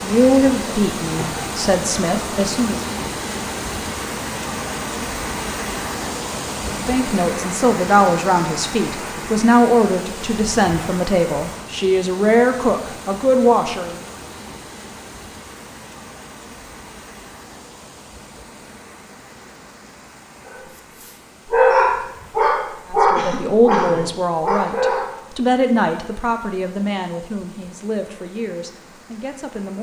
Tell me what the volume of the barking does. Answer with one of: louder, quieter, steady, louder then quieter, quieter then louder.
louder then quieter.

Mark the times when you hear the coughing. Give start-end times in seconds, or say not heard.
23.1-24.1.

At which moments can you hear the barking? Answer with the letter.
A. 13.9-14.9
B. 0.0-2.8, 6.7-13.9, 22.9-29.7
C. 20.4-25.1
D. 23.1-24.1
C.